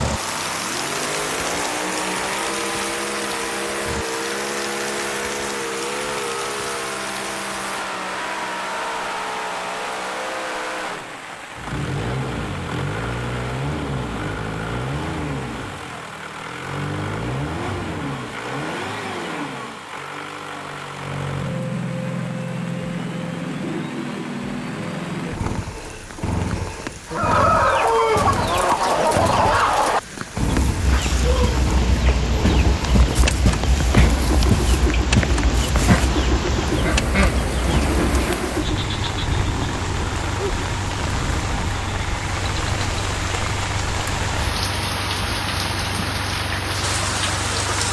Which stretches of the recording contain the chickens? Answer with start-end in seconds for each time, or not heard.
27.1-38.4.